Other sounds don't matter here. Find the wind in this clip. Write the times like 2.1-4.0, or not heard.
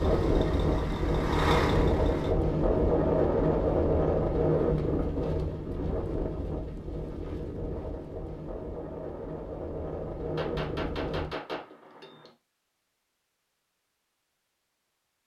0.0-11.3.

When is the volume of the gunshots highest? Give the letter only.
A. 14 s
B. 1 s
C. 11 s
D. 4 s
C.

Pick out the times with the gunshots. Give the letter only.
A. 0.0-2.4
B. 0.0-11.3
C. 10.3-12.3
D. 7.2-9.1
C.